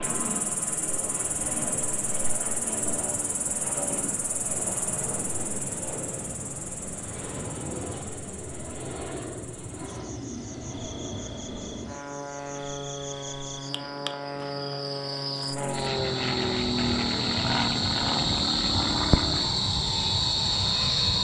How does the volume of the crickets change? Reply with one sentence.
The volume of the crickets goes down, then up.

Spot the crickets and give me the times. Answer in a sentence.
The crickets can be heard from 0.0 to 21.2 s.